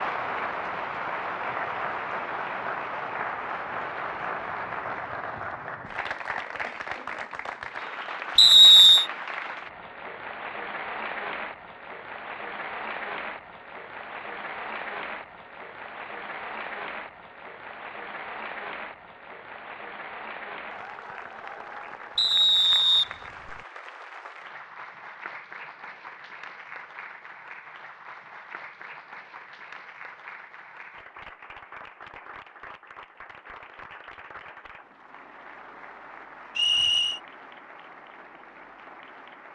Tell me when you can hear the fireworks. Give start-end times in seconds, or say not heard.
not heard.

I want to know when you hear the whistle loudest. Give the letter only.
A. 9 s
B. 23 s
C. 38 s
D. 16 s
A.